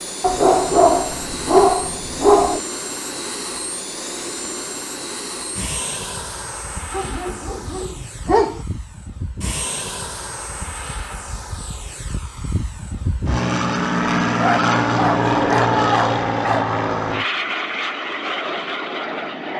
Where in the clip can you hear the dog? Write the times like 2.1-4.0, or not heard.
0.2-2.6, 6.9-8.6, 14.3-16.6.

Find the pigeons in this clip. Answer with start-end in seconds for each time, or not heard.
not heard.